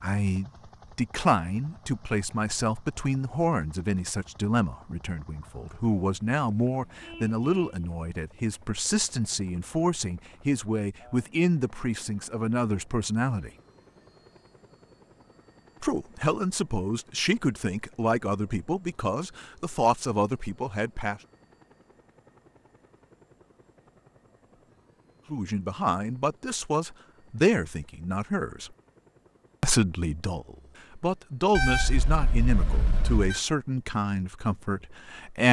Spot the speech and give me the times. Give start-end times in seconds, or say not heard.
0.0-13.5, 15.8-21.2, 25.3-28.7, 29.6-35.4.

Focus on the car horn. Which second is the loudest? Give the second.
32 s.